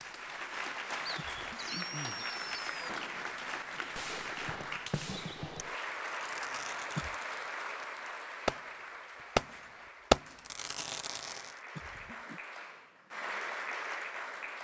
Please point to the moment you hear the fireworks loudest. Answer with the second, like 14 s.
10 s.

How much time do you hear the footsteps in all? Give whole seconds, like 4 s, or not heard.
not heard.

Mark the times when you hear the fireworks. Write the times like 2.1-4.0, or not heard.
1.4-8.7, 9.3-11.6.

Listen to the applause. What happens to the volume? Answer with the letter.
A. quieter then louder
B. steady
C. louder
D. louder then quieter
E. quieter
A.